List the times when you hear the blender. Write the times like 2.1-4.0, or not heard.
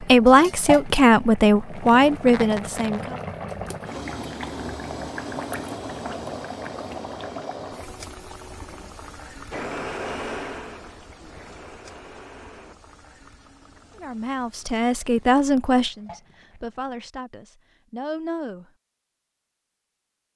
9.5-12.8.